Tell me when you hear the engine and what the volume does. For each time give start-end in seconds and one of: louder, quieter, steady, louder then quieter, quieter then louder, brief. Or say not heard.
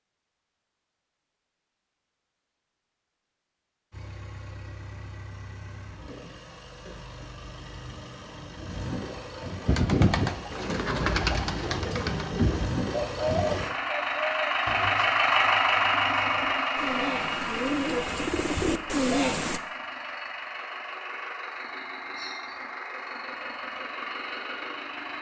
3.9-25.1 louder then quieter.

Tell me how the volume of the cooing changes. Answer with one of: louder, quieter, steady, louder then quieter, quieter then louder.
quieter then louder.